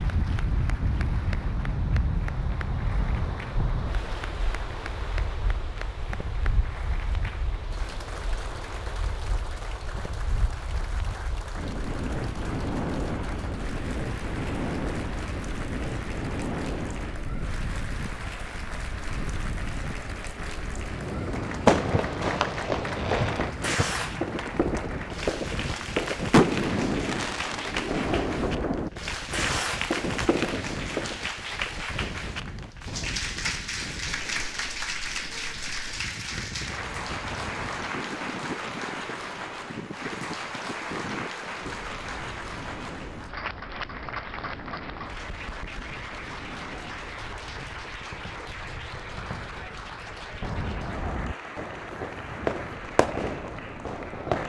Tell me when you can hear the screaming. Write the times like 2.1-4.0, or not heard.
not heard.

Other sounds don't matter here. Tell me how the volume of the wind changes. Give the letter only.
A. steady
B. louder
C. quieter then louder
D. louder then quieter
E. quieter
E.